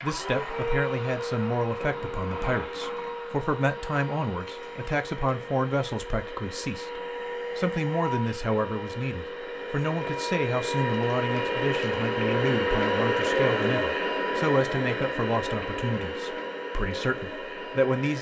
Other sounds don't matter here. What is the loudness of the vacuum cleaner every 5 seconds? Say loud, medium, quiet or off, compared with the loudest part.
medium, medium, loud, medium.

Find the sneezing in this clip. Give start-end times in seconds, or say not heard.
not heard.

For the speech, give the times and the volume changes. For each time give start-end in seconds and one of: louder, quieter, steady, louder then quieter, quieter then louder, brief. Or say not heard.
0.0-18.1 steady.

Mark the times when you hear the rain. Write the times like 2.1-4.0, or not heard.
not heard.